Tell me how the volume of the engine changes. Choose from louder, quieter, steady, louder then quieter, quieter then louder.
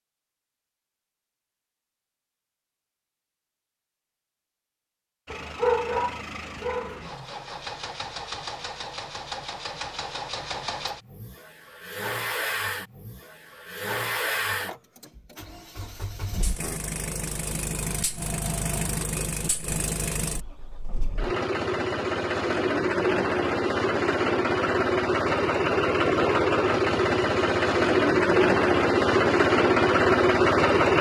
louder.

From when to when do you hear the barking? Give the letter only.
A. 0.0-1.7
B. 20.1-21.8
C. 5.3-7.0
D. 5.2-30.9
C.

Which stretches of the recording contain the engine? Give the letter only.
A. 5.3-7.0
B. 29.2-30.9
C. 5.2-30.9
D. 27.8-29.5
C.